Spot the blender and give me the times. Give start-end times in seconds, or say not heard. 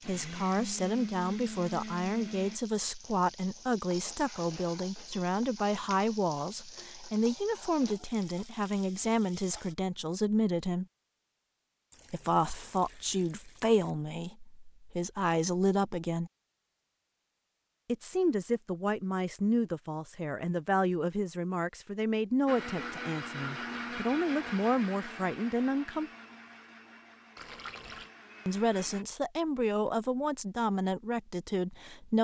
0.0-2.6, 22.4-29.1.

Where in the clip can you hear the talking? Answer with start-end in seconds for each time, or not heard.
0.1-10.8, 12.1-16.3, 17.9-26.1, 28.4-32.1.